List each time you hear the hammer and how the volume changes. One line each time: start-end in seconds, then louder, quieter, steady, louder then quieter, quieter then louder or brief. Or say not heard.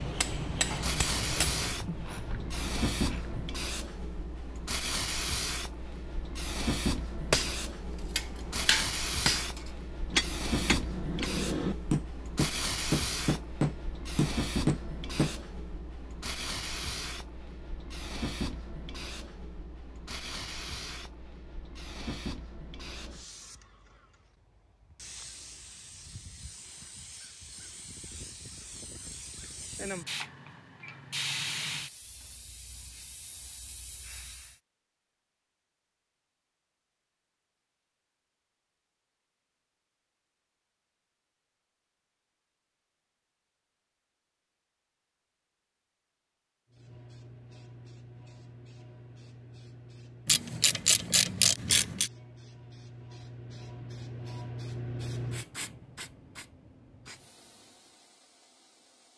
0.0-1.7 brief
7.3-15.3 louder.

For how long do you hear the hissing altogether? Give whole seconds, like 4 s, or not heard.
47 s.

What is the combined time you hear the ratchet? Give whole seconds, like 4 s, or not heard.
5 s.